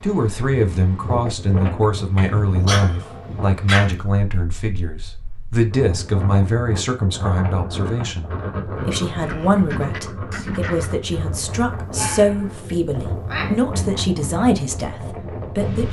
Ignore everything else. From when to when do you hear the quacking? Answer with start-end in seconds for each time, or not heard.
9.1-10.9.